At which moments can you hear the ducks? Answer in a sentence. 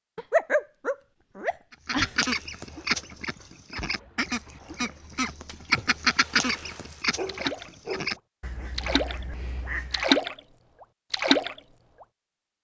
You can hear the ducks from 1.7 to 10.1 s.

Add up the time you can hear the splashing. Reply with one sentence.
The splashing can be heard for 6 seconds in total.